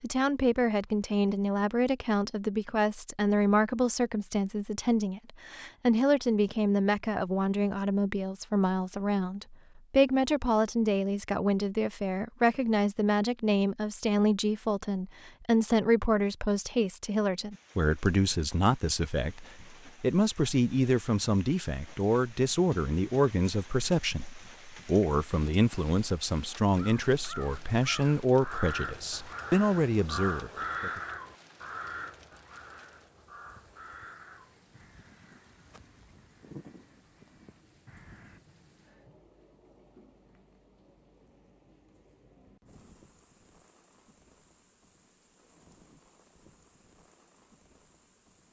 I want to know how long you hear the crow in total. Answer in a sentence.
The crow can be heard for 12 seconds in total.